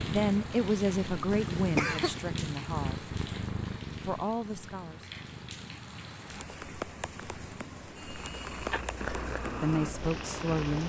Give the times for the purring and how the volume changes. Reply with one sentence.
The purring can be heard from 0.0 to 10.8 s, getting quieter then louder.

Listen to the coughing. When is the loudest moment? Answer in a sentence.
The loudest moment of the coughing is at 2 seconds.